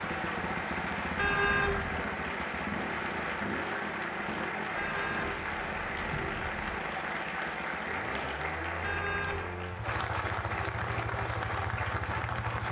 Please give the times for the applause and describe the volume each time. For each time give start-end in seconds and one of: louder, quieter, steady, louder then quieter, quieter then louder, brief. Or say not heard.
0.0-12.6 steady.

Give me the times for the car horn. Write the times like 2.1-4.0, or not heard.
1.1-2.0, 4.8-6.8, 8.8-9.5.